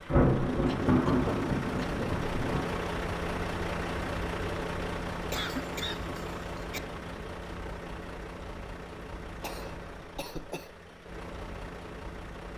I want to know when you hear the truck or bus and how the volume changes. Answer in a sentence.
You can hear the truck or bus from 0.0 to 12.5 s, getting quieter.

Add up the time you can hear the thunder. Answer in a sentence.
The thunder can be heard for 3 seconds in total.